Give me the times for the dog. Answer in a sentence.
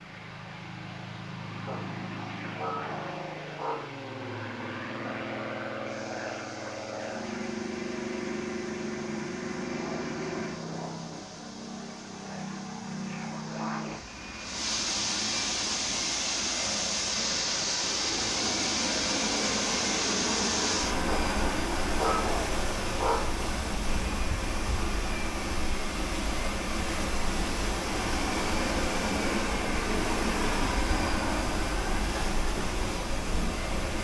You can hear the dog from 1.6 to 4.0 s and from 21.1 to 23.4 s.